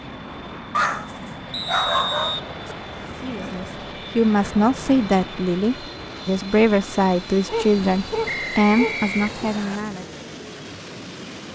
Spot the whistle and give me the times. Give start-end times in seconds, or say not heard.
1.5-2.5, 8.2-9.8.